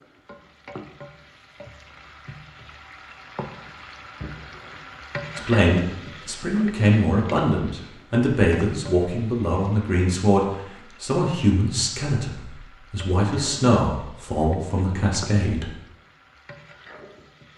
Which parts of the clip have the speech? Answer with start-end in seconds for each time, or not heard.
5.3-15.7.